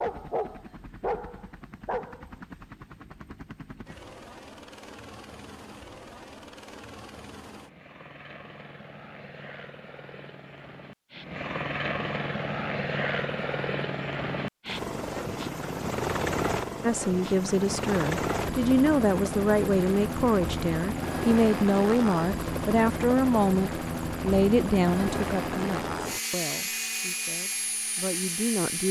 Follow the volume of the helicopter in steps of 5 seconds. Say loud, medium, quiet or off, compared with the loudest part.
quiet, quiet, loud, loud, loud, loud.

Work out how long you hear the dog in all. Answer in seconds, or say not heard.
2 s.